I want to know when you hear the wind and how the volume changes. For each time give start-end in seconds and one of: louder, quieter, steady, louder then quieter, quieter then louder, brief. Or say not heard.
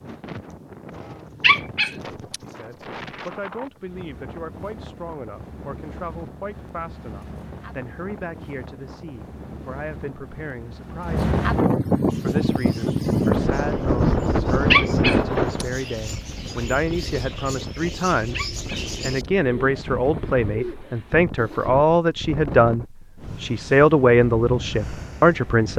0.0-25.7 louder then quieter.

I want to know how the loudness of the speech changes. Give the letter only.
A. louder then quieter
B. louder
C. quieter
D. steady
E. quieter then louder
B.